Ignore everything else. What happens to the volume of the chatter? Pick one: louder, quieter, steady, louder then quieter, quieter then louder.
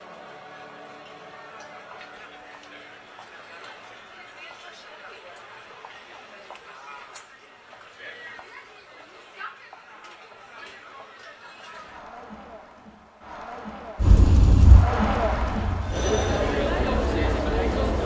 louder.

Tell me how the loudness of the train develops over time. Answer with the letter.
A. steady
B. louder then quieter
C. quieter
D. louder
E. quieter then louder
C.